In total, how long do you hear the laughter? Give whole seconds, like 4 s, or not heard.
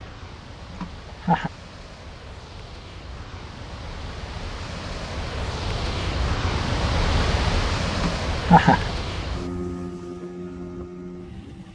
2 s.